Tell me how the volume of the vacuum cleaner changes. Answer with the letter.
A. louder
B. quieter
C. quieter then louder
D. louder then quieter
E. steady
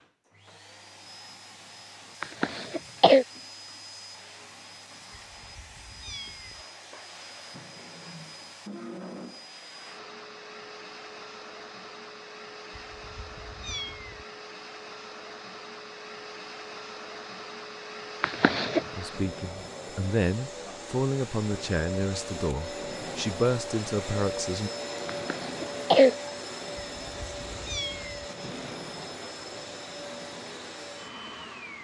A.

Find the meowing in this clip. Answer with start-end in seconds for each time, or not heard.
5.3-6.7, 12.7-14.2, 26.9-28.2.